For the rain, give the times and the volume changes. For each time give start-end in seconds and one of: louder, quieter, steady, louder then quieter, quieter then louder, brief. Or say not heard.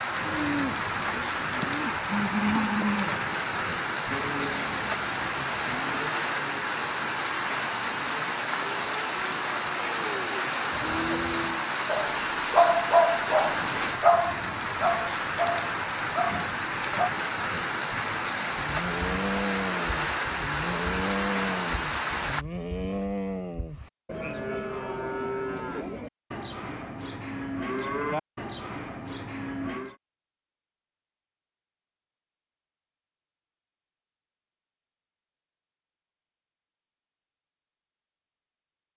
0.0-22.4 steady.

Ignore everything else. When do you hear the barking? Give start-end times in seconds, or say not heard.
11.8-17.1.